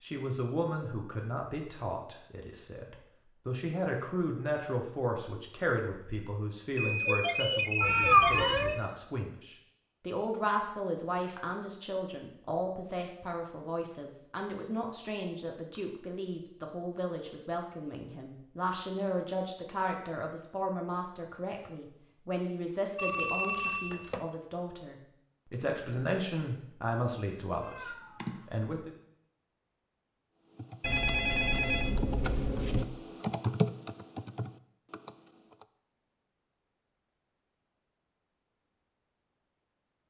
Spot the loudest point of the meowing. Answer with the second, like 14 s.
8 s.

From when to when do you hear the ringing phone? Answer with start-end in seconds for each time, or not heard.
6.8-8.9, 22.9-24.2, 30.8-32.9.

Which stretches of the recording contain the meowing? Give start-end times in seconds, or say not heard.
7.8-8.8, 27.6-28.4.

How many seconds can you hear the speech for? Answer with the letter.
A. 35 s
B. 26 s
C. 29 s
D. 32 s
C.